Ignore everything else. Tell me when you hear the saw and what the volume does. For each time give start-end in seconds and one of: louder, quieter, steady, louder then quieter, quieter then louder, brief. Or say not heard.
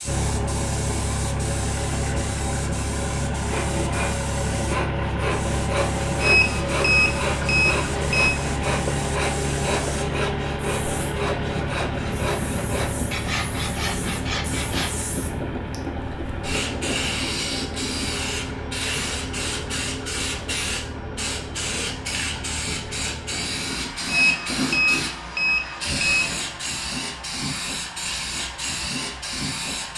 3.5-15.1 steady.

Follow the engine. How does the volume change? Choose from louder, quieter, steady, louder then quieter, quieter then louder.
quieter.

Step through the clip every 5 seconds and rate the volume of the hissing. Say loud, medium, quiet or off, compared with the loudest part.
medium, medium, quiet, loud, loud, loud.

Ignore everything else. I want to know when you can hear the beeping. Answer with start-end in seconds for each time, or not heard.
6.2-8.3, 24.1-26.4.